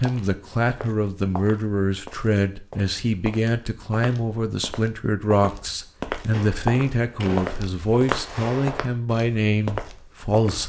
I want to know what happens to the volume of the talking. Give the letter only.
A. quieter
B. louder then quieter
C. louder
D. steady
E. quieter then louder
D.